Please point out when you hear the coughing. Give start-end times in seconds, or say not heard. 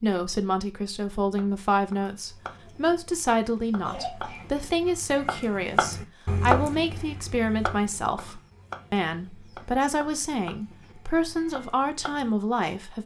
3.9-4.5.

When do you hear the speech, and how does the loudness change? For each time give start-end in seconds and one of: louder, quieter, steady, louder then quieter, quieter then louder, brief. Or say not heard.
0.0-13.0 steady.